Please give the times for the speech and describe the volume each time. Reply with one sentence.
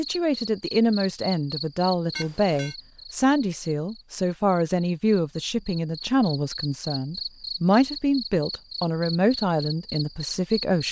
The speech can be heard from 0.0 to 10.8 s, at a steady volume.